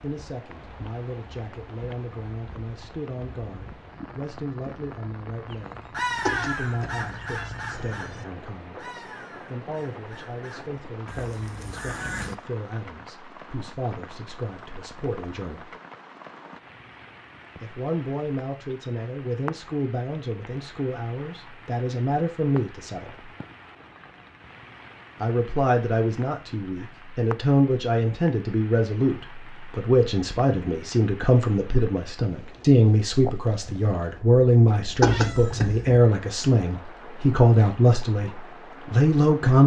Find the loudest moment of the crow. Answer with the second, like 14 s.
6 s.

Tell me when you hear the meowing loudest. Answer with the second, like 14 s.
35 s.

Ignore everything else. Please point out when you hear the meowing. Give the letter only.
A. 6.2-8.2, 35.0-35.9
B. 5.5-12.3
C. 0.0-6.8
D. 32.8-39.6
A.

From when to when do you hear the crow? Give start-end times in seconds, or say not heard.
5.5-12.3.